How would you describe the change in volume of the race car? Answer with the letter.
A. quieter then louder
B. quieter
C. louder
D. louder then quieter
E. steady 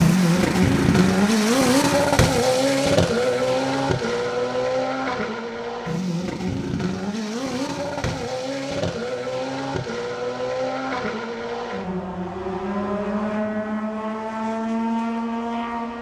B.